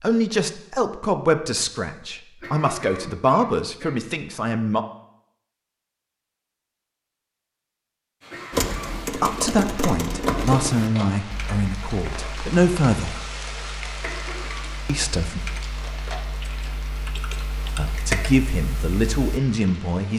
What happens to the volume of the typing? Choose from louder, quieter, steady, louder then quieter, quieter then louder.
quieter then louder.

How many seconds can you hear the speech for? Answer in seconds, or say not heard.
12 s.